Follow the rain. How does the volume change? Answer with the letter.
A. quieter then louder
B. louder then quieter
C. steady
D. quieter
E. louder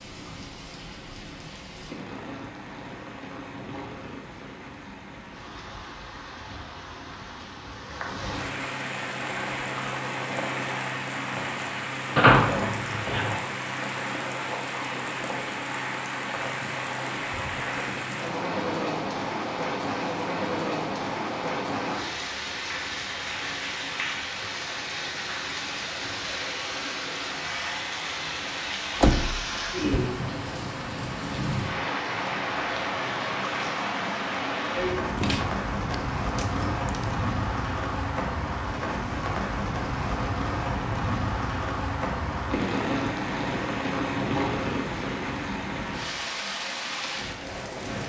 E.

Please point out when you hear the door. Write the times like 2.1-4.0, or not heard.
12.2-13.3, 29.0-30.0, 35.1-37.1.